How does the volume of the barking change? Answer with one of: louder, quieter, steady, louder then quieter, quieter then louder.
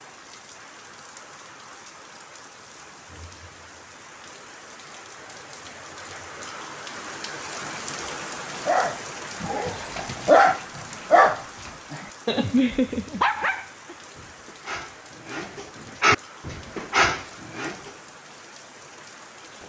quieter then louder.